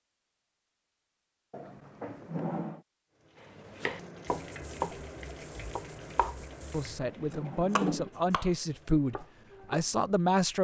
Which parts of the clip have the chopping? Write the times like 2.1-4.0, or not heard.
3.4-9.9.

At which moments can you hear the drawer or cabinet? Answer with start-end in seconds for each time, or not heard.
1.5-2.9, 6.5-8.1.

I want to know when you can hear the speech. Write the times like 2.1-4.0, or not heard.
6.7-10.5.